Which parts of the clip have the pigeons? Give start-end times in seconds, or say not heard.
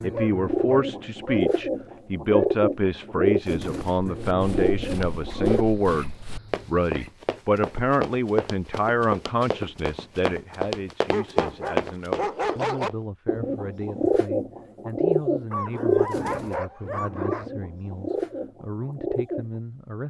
0.0-5.7, 13.2-19.6.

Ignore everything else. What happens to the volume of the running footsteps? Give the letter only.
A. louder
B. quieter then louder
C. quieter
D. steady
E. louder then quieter
A.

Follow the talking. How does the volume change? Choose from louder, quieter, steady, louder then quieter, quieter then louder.
quieter.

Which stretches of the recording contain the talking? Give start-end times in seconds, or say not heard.
0.0-20.0.